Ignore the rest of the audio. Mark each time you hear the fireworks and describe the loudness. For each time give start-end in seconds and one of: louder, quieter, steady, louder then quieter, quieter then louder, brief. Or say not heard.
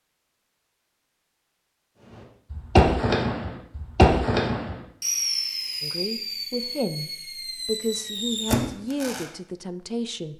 2.5-9.3 quieter then louder.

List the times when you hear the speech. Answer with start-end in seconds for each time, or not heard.
5.8-10.3.